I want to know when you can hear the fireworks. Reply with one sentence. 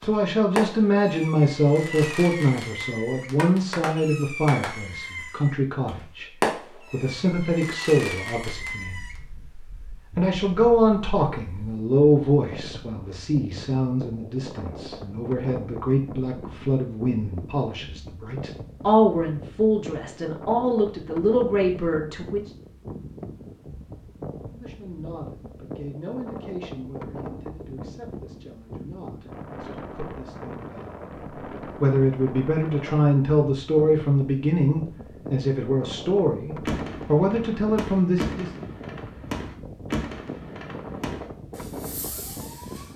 The fireworks can be heard from 0.0 to 9.2 s and from 36.6 to 42.9 s.